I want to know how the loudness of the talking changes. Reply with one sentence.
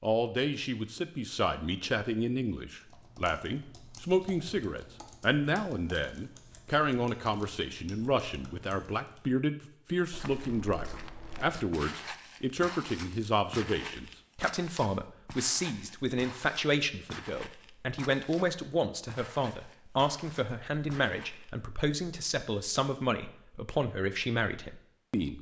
The loudness of the talking stays about the same.